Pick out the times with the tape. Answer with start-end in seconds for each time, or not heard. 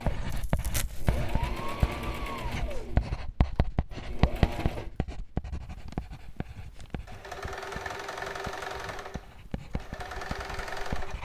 0.3-1.2.